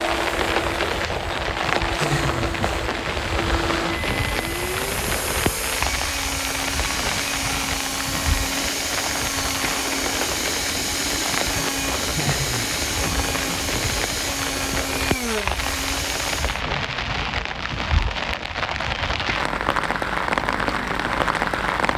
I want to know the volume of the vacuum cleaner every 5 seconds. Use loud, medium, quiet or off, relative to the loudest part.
loud, loud, loud, loud, off.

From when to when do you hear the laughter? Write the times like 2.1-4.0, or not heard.
2.0-2.5, 12.2-12.7, 16.6-17.1.